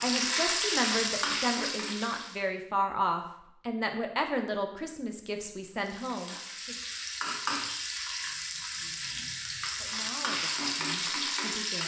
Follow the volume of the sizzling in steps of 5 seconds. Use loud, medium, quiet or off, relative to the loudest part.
loud, medium, loud.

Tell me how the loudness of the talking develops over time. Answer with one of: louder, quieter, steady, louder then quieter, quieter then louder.
quieter.